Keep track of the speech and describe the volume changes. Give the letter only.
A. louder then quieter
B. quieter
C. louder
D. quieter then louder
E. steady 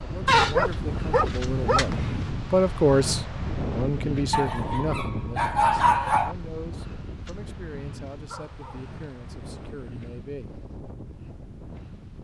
A.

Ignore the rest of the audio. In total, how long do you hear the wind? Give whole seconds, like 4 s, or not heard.
12 s.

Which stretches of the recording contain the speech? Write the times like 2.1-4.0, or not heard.
0.0-10.6.